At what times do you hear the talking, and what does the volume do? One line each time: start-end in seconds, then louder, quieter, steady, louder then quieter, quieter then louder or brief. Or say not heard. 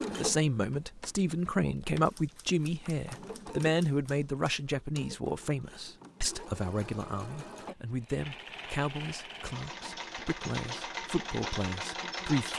0.1-12.5 quieter.